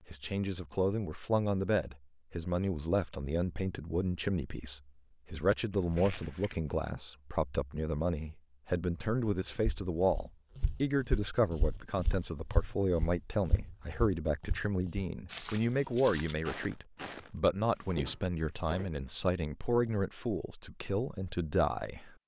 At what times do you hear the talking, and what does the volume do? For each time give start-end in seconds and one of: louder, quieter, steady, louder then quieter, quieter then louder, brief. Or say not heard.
0.1-22.1 steady.